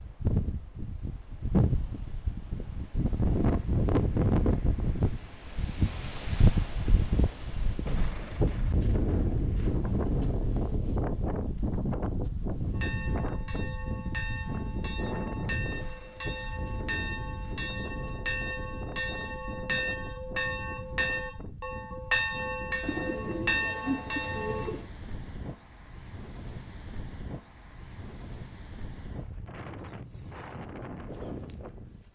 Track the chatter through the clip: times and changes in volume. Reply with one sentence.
The chatter can't be heard in this clip.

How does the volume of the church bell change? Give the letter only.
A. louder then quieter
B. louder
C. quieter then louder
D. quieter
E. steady
B.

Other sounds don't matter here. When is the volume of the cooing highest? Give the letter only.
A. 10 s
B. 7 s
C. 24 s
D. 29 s
C.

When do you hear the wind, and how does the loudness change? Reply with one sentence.
You can hear the wind from 0.0 to 32.1 s, getting quieter.